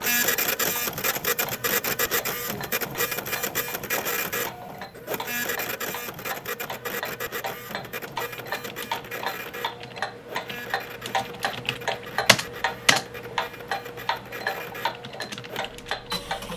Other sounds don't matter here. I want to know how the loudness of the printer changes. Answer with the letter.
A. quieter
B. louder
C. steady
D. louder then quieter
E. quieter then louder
A.